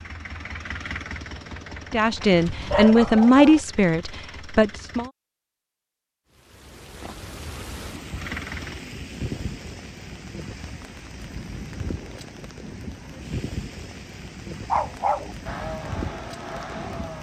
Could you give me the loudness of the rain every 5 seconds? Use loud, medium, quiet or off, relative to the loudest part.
off, loud, loud, loud.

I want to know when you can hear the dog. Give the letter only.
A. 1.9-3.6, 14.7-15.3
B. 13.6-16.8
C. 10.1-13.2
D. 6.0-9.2
A.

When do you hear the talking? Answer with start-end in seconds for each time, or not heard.
1.9-5.1.